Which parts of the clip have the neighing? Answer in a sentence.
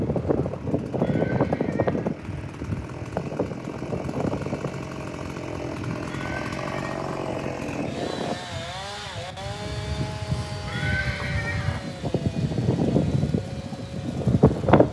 The neighing can be heard from 0.9 to 2.2 s, from 6.0 to 7.0 s and from 10.7 to 11.9 s.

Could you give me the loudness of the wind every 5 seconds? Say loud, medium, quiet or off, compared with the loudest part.
loud, medium, loud.